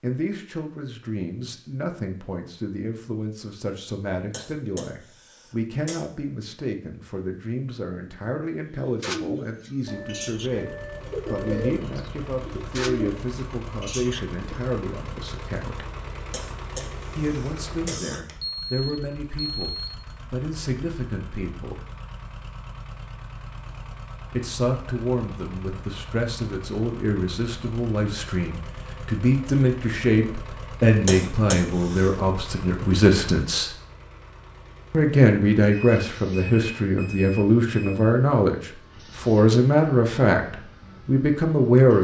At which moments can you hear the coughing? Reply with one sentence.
The coughing can be heard from 4.3 to 6.0 s, from 16.3 to 18.4 s and from 31.1 to 32.1 s.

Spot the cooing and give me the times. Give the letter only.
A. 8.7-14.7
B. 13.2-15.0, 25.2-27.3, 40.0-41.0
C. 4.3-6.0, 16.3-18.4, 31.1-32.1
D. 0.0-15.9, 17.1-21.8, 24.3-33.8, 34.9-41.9
A.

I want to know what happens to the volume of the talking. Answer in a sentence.
The volume of the talking goes up.